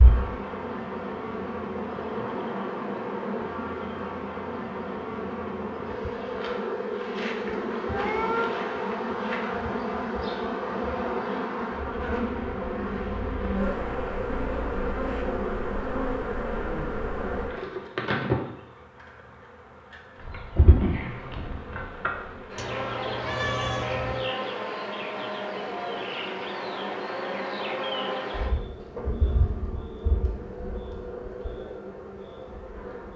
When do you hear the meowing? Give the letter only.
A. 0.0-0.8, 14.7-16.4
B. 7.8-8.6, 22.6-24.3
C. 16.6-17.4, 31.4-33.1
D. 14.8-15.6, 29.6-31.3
B.